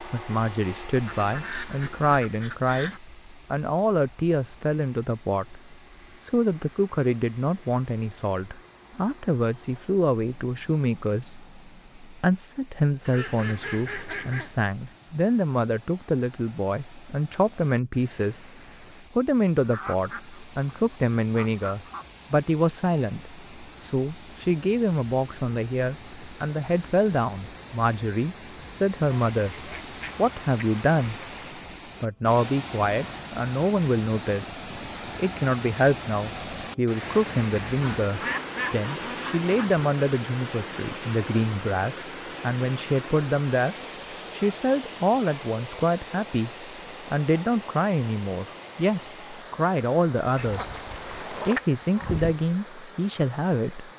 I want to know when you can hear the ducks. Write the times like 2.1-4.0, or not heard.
1.1-3.0, 13.1-14.6, 19.6-22.1, 29.1-31.6, 37.8-39.7, 50.4-52.4.